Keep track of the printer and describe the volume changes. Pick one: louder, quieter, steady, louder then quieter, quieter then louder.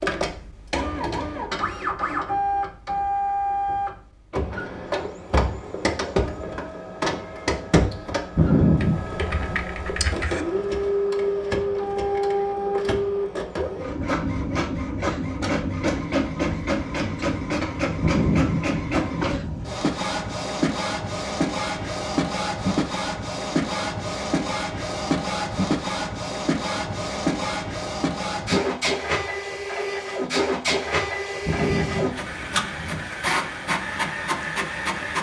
steady.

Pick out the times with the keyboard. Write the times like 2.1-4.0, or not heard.
8.8-10.4.